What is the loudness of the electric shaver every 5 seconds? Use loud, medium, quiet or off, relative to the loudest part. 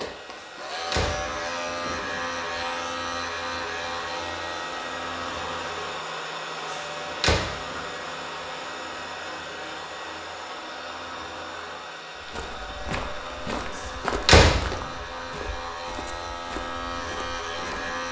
loud, medium, medium, loud.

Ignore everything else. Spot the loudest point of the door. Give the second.
14 s.